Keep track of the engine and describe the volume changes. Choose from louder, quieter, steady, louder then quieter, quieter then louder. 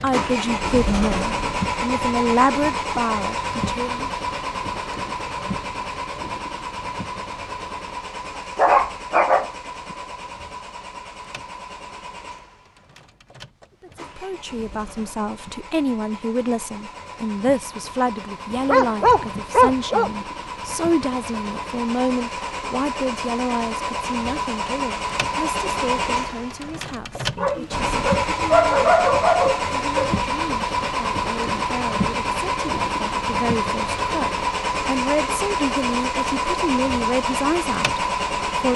quieter then louder.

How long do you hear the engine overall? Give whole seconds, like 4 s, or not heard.
39 s.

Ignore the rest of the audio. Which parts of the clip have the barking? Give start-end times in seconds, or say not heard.
8.3-9.9, 18.6-20.1, 27.4-30.1.